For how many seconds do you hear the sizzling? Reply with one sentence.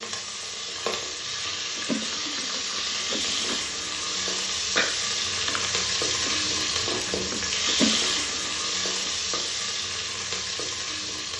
You can hear the sizzling for 11 seconds altogether.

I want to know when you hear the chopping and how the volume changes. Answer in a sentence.
The chopping can't be heard in this clip.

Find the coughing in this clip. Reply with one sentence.
You can't hear the coughing here.